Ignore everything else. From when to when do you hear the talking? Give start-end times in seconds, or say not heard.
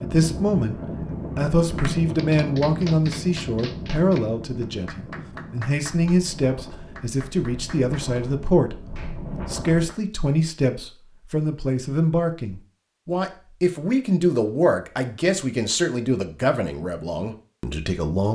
0.0-18.3.